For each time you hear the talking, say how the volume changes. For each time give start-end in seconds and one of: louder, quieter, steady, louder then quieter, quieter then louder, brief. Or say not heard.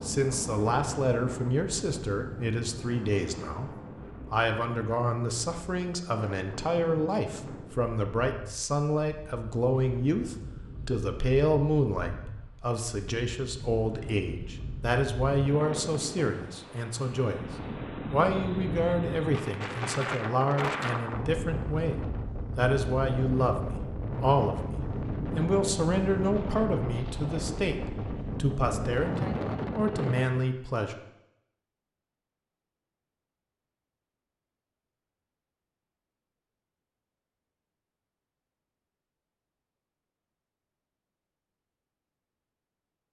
0.0-17.4 steady
18.1-30.9 steady.